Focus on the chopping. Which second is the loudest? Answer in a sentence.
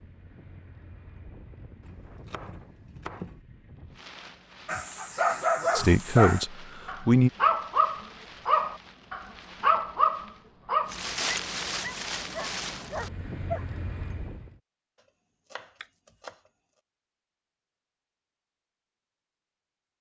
The loudest moment of the chopping is at 3 seconds.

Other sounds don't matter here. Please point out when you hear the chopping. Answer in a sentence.
The chopping can be heard from 1.8 to 3.4 s and from 15.5 to 16.4 s.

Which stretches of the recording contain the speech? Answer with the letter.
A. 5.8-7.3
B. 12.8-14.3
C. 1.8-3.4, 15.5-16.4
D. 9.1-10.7
A.